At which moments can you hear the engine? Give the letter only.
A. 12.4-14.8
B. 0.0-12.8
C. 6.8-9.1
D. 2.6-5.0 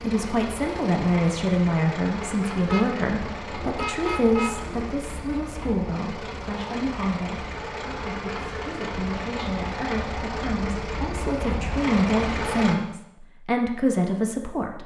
B.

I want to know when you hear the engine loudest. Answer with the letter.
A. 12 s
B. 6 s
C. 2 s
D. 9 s
A.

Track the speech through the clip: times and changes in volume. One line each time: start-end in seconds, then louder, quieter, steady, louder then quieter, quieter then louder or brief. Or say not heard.
0.0-14.8 quieter then louder.